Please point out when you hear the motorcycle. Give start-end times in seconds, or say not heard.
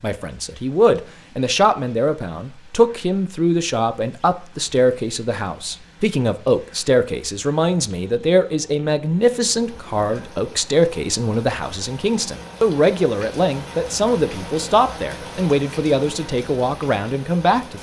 not heard.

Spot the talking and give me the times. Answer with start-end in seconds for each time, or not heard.
0.0-17.7.